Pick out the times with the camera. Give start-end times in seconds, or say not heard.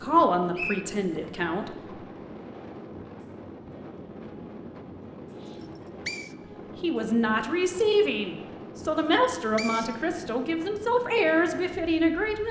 not heard.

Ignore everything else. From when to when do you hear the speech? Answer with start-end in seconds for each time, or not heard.
0.0-1.8, 6.8-12.4.